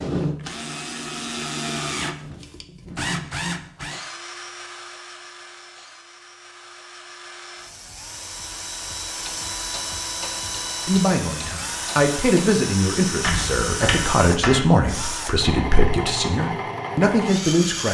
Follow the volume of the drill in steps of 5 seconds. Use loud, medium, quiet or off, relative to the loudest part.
loud, medium, loud, loud.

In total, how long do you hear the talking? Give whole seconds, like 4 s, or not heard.
7 s.